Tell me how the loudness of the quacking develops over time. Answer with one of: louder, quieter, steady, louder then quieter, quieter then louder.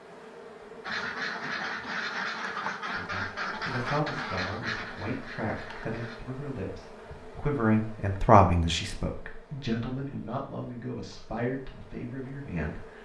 quieter.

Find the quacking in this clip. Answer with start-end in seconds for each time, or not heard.
0.8-6.2.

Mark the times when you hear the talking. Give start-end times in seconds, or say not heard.
3.0-12.9.